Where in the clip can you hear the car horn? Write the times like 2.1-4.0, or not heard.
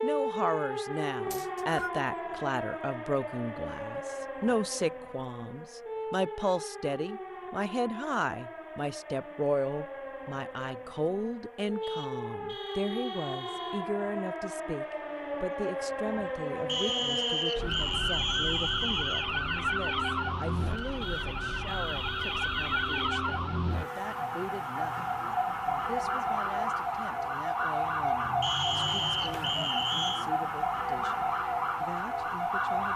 11.8-13.9, 21.0-23.1.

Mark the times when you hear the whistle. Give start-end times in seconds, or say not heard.
1.3-1.9, 16.6-19.2, 28.4-30.2.